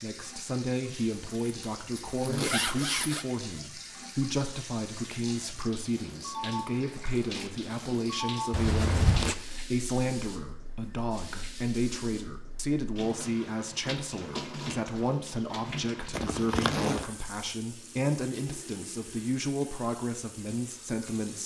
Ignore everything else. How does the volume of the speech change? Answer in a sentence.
The loudness of the speech stays about the same.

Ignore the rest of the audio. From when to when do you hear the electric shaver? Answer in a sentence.
The electric shaver can't be heard in this clip.